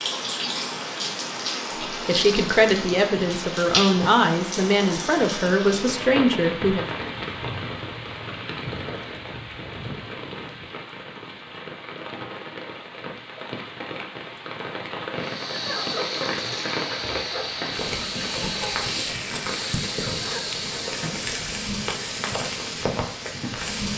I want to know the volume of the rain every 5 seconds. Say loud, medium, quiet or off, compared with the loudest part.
loud, loud, medium, loud, loud.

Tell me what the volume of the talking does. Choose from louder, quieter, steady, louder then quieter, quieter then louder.
steady.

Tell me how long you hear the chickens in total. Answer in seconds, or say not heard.
6 s.